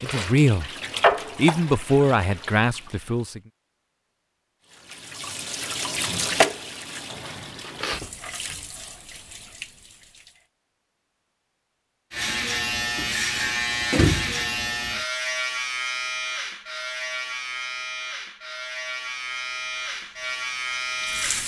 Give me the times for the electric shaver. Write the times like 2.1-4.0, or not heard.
12.1-21.4.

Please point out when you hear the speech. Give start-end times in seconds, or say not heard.
0.0-3.4.